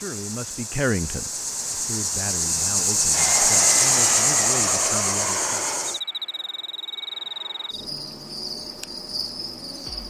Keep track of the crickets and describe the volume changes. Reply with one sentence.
The volume of the crickets goes up, then down.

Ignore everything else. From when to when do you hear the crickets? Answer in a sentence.
The crickets can be heard from 0.0 to 10.0 s.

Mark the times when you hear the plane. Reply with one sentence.
The plane can be heard from 3.1 to 7.8 s.